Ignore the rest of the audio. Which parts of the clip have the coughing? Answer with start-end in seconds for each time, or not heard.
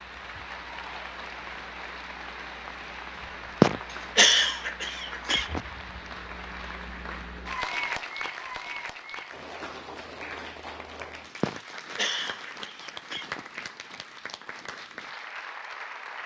3.6-5.6, 11.4-13.4.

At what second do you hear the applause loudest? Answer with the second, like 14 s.
8 s.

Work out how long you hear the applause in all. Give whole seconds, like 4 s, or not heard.
16 s.